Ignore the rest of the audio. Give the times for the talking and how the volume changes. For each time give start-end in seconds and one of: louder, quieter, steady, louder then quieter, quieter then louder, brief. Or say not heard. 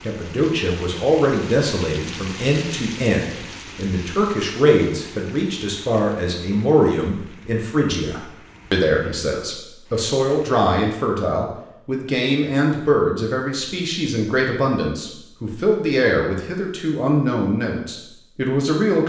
0.0-19.0 steady.